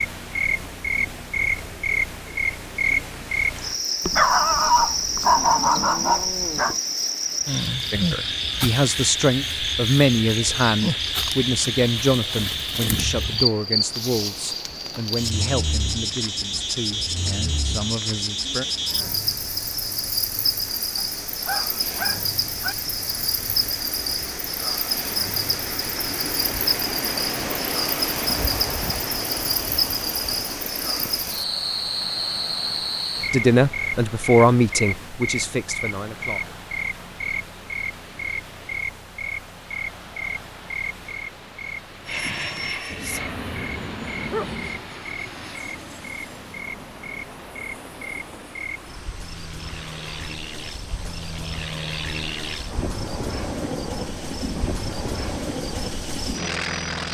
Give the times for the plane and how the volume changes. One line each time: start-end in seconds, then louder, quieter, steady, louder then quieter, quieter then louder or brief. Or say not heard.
42.0-57.0 quieter then louder.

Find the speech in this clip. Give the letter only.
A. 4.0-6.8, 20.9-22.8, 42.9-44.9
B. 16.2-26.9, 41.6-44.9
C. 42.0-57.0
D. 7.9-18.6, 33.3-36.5
D.